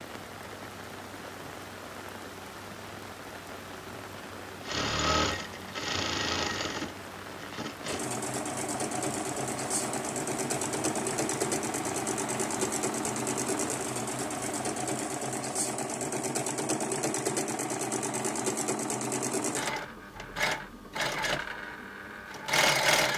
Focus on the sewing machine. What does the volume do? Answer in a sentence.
The volume of the sewing machine stays about the same.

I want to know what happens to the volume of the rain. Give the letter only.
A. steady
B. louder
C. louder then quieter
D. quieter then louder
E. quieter
A.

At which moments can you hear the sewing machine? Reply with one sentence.
You can hear the sewing machine from 4.6 to 23.1 s.